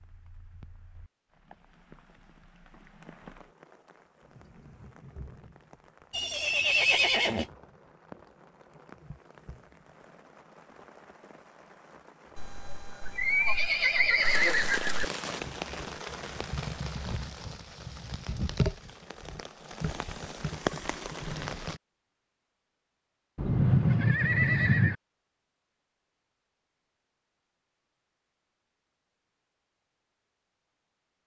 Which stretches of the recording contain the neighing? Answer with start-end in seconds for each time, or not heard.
6.1-7.5, 12.3-15.1, 23.4-24.9.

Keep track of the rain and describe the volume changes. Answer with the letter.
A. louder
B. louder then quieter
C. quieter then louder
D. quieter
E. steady
A.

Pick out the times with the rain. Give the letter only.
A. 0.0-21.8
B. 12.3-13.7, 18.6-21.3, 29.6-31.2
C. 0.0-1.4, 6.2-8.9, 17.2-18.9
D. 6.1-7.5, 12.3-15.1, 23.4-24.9
A.